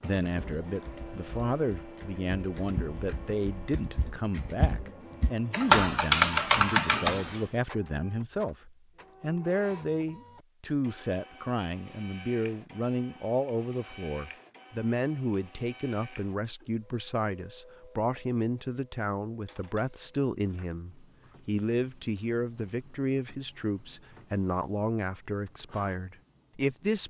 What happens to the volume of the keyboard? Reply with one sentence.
The loudness of the keyboard goes up.